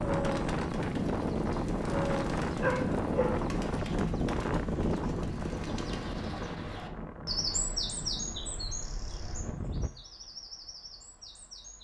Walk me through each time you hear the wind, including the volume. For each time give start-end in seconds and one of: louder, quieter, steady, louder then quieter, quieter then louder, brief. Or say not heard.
0.0-9.9 quieter.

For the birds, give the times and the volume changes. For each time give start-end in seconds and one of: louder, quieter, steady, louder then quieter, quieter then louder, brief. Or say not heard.
0.0-11.7 louder then quieter.